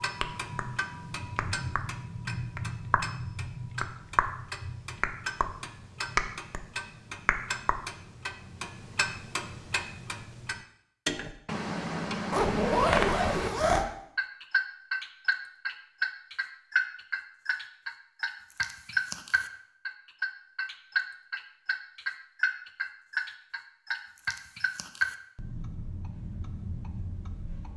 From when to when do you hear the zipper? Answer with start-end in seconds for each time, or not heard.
12.3-13.8.